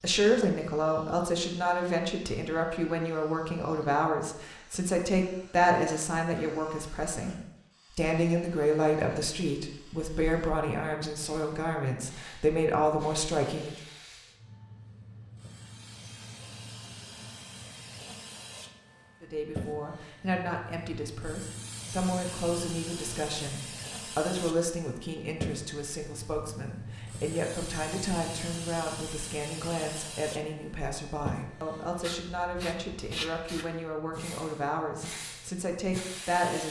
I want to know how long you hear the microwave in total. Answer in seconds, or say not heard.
not heard.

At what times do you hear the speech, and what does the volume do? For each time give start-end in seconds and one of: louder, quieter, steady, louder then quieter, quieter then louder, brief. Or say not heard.
0.0-13.8 steady
19.2-36.6 steady.